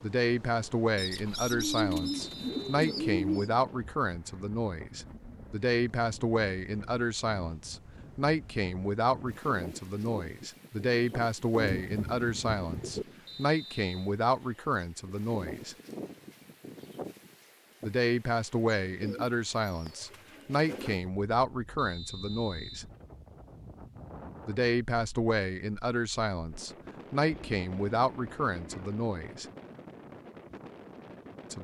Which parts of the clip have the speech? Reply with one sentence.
The speech can be heard from 0.0 to 15.8 s, from 17.8 to 22.9 s and from 24.4 to 29.4 s.